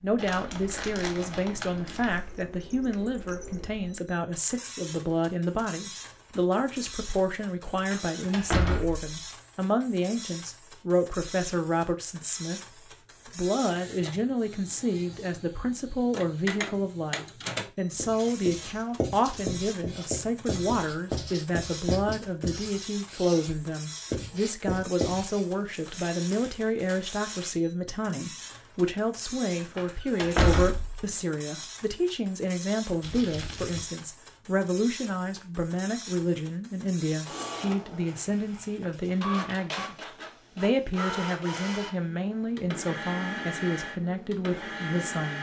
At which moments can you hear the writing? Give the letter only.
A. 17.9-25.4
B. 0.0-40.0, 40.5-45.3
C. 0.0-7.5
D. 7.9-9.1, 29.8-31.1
A.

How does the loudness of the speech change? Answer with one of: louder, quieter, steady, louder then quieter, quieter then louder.
steady.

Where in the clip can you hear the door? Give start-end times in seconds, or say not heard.
7.9-9.1, 29.8-31.1.